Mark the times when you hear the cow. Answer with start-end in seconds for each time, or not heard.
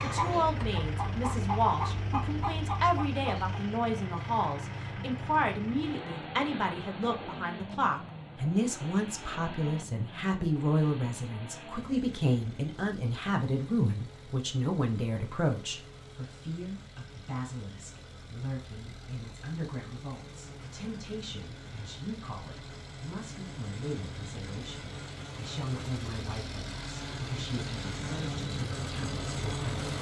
not heard.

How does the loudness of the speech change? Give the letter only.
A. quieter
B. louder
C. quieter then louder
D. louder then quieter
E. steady
A.